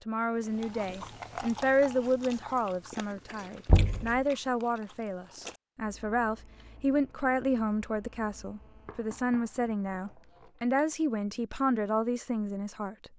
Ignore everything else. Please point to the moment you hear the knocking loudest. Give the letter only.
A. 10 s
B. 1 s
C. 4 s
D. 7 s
C.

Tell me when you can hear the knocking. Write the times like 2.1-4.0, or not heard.
3.6-4.2, 8.8-10.8.